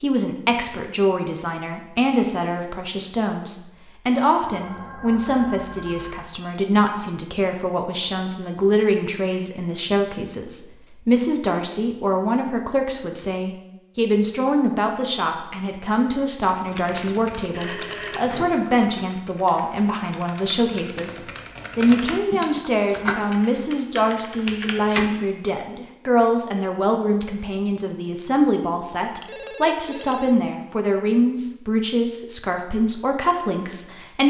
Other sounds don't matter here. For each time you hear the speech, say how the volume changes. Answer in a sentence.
You can hear the speech from 0.0 to 34.2 s, at a steady volume.